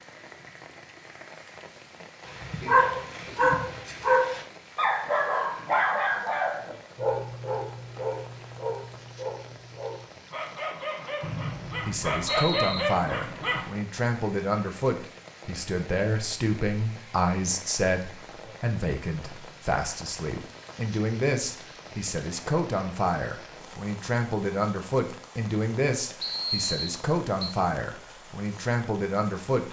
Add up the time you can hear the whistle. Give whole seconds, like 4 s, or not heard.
3 s.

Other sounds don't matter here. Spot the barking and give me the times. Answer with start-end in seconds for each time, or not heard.
2.2-13.7.